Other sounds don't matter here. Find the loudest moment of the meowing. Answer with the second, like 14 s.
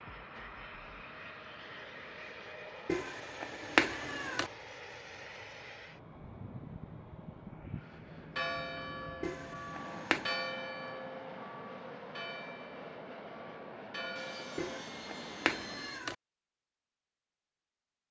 4 s.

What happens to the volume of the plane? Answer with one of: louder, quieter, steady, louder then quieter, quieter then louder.
steady.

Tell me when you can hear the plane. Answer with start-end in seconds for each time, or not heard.
0.0-15.9.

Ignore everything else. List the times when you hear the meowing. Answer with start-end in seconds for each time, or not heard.
2.9-4.5, 9.2-10.3, 14.6-16.1.